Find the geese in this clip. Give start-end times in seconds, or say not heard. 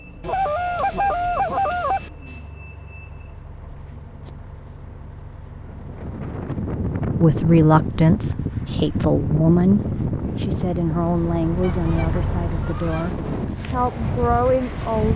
0.2-2.1, 11.6-13.2.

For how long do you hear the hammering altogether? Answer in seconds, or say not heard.
not heard.